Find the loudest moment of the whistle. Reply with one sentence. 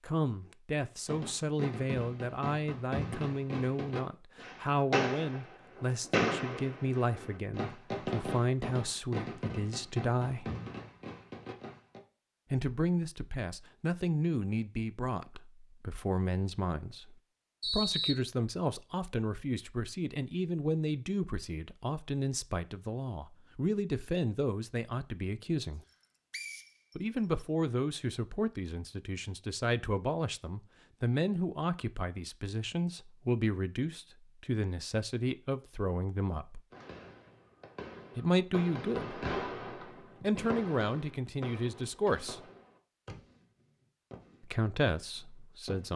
The volume of the whistle peaks at 18 seconds.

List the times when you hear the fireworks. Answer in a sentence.
The fireworks can be heard from 1.1 to 12.0 s and from 36.7 to 45.9 s.